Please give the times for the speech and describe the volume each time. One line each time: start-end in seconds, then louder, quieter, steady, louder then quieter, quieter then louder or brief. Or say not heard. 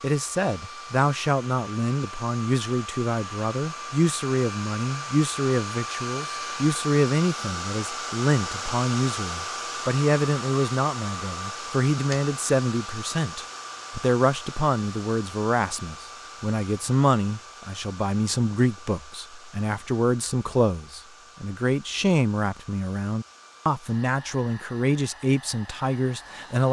0.0-26.6 steady.